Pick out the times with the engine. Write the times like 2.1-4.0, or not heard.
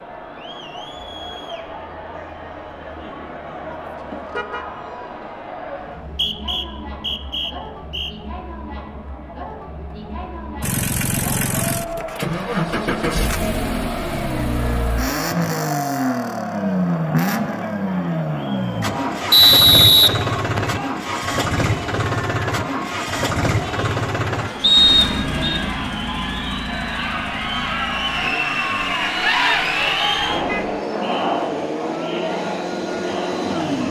10.6-33.8.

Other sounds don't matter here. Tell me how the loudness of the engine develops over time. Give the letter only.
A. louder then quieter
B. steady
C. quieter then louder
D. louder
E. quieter
E.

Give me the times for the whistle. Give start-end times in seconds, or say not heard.
6.0-8.1, 19.3-20.8, 24.6-25.6.